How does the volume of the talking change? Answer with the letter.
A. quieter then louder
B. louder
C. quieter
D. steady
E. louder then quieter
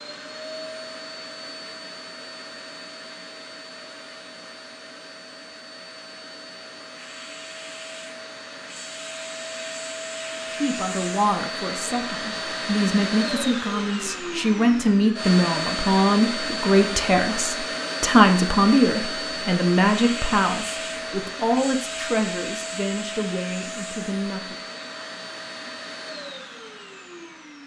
E.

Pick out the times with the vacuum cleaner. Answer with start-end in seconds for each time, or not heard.
0.0-27.6.